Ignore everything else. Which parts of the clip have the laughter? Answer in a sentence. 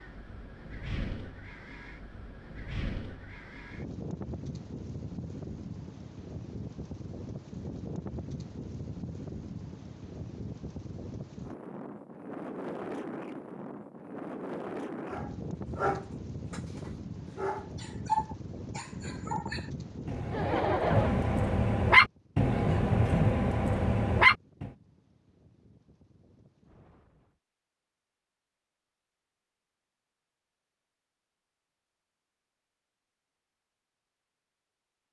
You can hear the laughter from 20.3 to 21.2 s.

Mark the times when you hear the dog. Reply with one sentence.
The dog can be heard from 15.1 to 24.7 s.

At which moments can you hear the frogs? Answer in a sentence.
The frogs can't be heard in this clip.